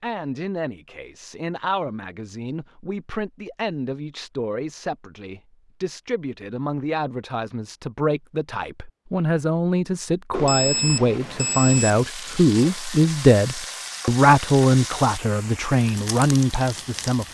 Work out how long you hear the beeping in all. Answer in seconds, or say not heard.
2 s.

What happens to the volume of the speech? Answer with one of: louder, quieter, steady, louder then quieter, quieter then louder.
louder.